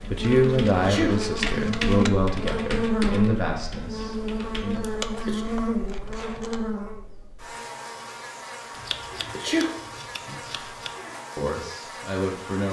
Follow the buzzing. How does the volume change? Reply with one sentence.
The loudness of the buzzing goes down.